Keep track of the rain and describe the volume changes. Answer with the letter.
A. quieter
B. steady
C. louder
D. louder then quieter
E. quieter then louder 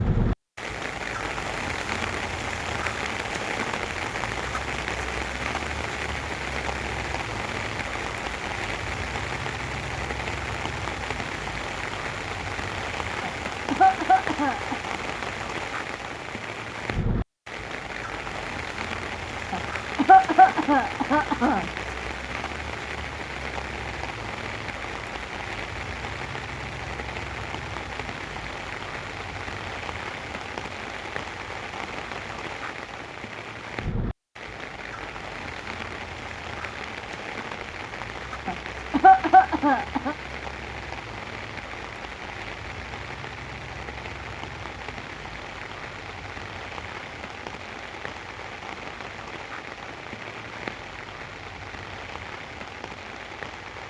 A.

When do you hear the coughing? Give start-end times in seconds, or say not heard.
13.2-14.8, 19.5-21.6, 38.5-40.1.